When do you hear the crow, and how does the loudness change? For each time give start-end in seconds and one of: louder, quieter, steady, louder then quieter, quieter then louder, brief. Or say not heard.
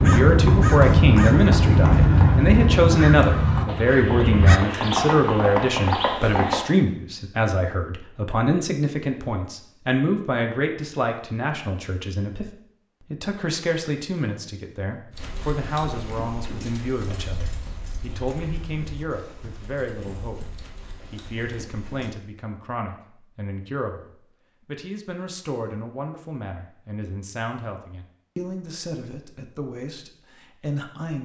0.0-4.6 quieter.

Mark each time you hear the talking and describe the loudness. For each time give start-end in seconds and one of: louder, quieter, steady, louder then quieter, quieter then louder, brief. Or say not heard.
0.0-31.2 quieter.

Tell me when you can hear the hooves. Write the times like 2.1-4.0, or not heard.
0.0-6.6, 15.1-22.1.